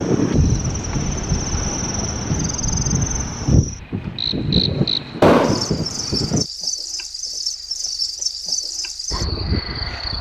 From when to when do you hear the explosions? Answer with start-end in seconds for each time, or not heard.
5.2-5.8.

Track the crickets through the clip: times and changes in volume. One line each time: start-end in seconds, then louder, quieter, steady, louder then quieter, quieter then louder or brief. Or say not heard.
0.0-10.1 louder.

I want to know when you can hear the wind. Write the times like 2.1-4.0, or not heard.
0.0-6.5.